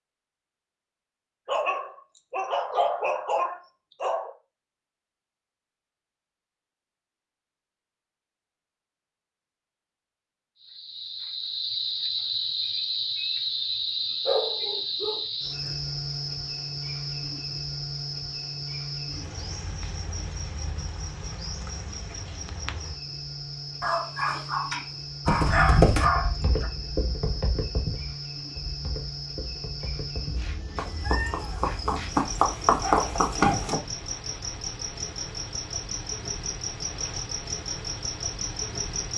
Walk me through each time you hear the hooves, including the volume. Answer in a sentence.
You can hear the hooves from 25.2 to 33.8 s, getting quieter then louder.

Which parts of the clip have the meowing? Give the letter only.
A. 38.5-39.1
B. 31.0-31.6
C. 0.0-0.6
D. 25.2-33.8
B.